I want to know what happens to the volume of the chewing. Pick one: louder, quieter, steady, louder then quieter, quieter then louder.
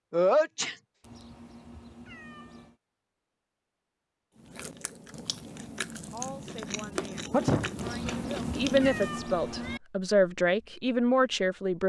louder.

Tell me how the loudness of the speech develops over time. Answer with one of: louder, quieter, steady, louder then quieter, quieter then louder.
louder.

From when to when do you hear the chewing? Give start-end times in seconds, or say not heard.
4.3-9.2.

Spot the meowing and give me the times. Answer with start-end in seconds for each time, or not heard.
1.0-2.8, 7.8-9.8.